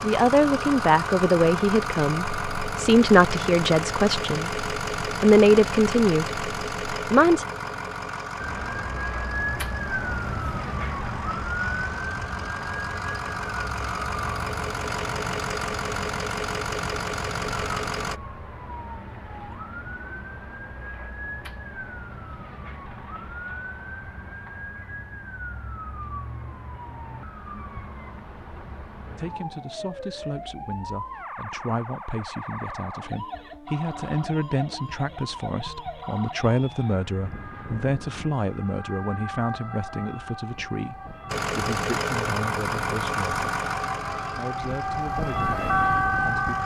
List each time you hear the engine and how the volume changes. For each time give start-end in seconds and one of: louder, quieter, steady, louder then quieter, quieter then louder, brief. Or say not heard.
0.0-18.2 quieter then louder
41.2-46.6 quieter.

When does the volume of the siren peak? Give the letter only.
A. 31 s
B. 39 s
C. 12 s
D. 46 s
D.